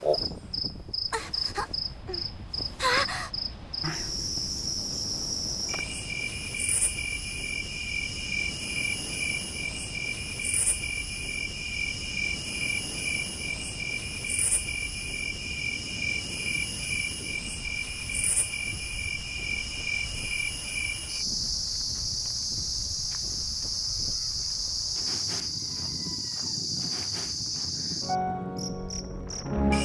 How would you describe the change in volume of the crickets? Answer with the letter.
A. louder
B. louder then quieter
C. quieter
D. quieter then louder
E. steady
E.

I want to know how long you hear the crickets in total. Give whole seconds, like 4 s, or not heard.
30 s.